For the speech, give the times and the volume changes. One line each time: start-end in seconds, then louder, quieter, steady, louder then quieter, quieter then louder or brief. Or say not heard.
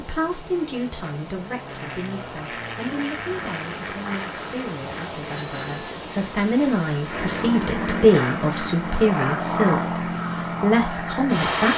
0.0-11.7 louder.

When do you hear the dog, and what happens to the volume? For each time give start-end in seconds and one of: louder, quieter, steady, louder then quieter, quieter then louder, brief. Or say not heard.
not heard.